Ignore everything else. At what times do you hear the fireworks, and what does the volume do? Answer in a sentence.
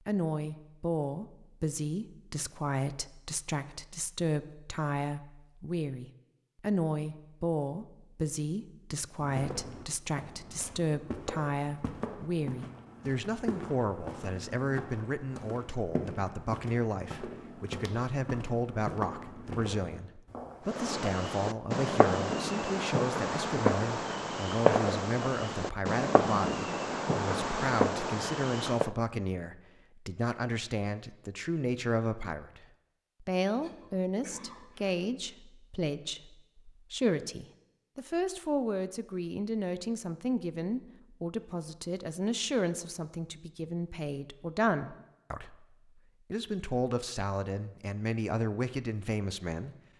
You can hear the fireworks from 20.6 to 28.9 s, at a steady volume.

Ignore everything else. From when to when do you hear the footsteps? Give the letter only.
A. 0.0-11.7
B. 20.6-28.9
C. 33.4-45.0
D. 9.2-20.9
D.